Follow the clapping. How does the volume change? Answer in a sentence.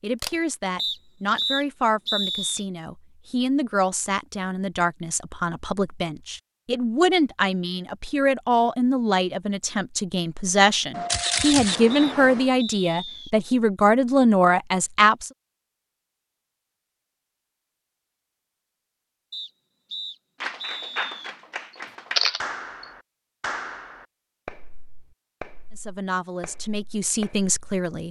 The volume of the clapping goes down.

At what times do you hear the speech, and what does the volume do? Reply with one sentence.
The speech can be heard from 0.0 to 15.3 s, getting louder; and briefly from 25.7 to 28.0 s.